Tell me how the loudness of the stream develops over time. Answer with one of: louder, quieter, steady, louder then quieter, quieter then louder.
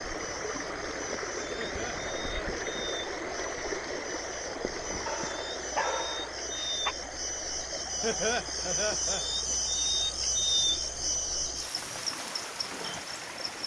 quieter.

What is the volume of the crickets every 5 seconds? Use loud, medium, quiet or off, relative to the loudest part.
medium, loud, loud.